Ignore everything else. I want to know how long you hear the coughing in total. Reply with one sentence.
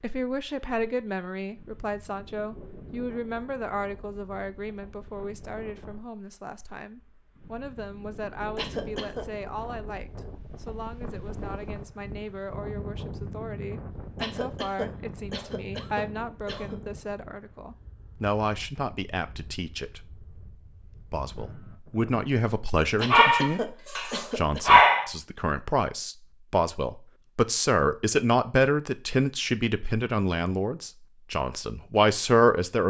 You can hear the coughing for 5 seconds altogether.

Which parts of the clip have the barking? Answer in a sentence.
The barking can be heard from 23.1 to 25.1 s.